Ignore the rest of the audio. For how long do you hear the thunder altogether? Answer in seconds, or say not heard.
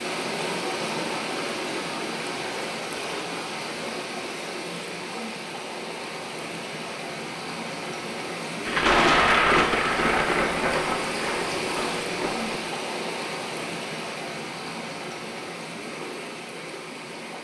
4 s.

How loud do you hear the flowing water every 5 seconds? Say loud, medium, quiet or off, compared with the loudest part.
loud, loud, loud, medium.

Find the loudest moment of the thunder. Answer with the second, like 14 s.
9 s.